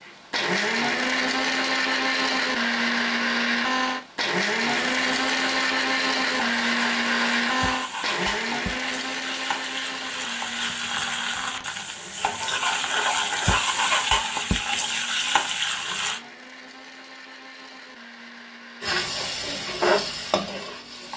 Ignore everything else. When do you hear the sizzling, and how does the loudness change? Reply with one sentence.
The sizzling can be heard from 4.6 to 16.2 s, getting louder; and briefly from 18.8 to 21.1 s.